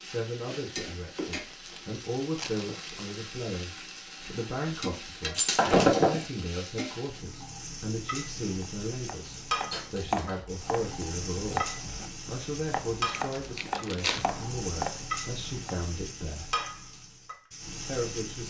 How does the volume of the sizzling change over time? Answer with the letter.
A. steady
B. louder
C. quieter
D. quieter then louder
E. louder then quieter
A.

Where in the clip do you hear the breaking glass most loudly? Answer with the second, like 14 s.
6 s.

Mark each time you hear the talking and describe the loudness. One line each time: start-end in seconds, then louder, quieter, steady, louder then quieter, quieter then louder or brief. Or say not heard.
0.0-16.6 steady
17.9-18.4 brief.